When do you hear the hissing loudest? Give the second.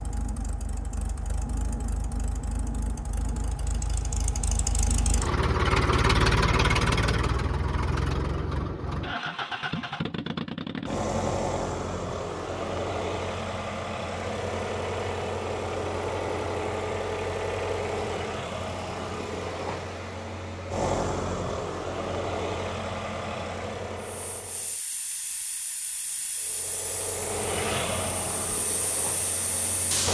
30 s.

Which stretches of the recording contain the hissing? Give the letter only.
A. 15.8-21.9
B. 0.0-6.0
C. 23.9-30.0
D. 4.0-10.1
C.